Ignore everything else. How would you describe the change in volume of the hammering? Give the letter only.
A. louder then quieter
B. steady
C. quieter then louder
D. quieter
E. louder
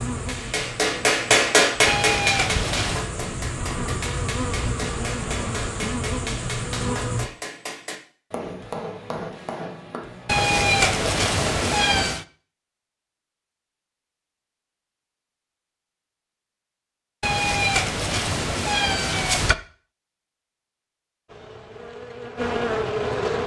D.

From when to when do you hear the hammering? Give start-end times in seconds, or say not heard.
0.1-11.8.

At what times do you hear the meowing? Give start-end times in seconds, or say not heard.
1.9-3.0, 10.2-12.2, 17.2-19.6.